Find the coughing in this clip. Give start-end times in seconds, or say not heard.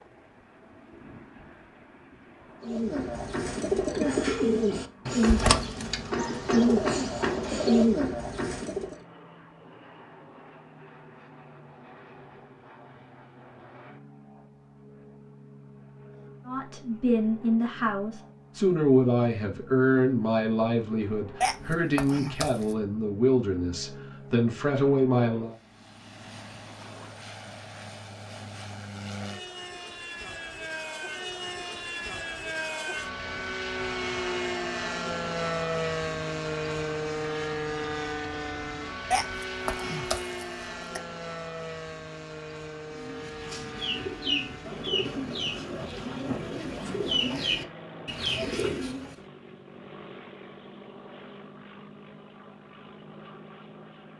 21.4-22.8, 39.1-41.0.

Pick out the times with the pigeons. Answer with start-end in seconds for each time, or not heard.
2.6-8.9, 42.9-49.1.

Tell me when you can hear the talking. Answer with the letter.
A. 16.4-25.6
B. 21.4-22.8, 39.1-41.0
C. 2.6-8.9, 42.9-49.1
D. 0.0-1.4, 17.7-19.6
A.